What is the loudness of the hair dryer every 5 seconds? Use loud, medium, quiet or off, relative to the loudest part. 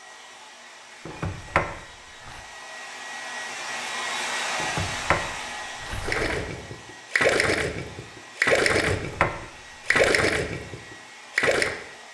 loud, medium, medium.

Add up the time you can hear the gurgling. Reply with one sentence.
You can hear the gurgling for 6 seconds altogether.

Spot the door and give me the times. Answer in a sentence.
You can hear the door from 1.1 to 2.4 s, from 4.6 to 6.3 s and from 8.7 to 10.2 s.